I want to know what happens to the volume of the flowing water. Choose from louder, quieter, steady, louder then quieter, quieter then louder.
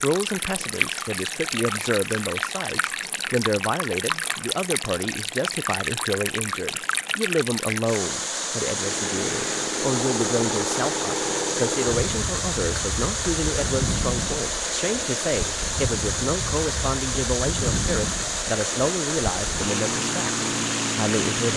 steady.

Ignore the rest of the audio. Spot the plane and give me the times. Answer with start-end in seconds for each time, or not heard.
8.8-21.5.